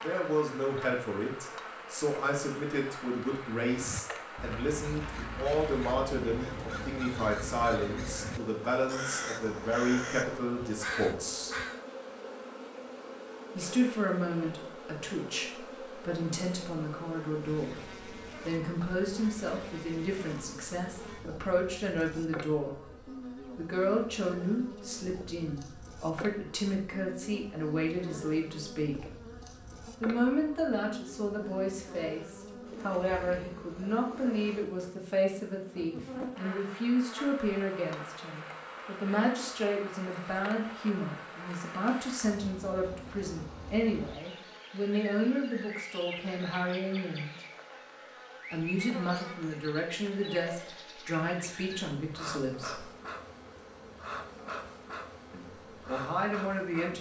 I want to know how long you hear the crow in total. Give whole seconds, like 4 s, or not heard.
8 s.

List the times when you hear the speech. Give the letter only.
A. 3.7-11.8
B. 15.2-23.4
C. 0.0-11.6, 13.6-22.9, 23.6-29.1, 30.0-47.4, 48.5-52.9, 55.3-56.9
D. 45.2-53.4
C.